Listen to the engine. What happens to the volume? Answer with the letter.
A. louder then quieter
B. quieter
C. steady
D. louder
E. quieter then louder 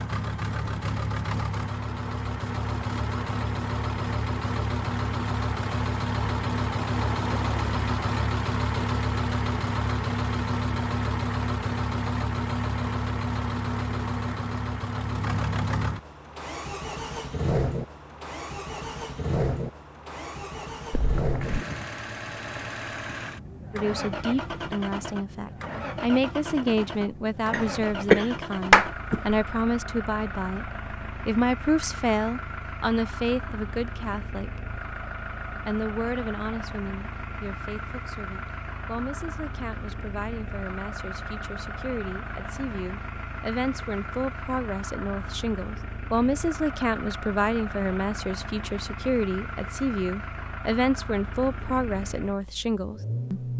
B.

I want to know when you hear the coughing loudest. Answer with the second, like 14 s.
29 s.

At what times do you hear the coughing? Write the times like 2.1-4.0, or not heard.
20.9-21.6, 27.5-29.4.